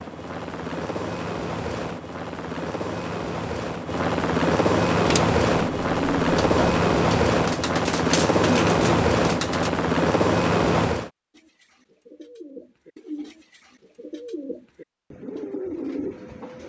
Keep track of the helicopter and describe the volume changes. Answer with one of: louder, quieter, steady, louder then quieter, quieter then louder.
louder.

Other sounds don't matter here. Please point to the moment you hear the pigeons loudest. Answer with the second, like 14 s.
9 s.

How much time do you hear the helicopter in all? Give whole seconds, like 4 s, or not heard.
11 s.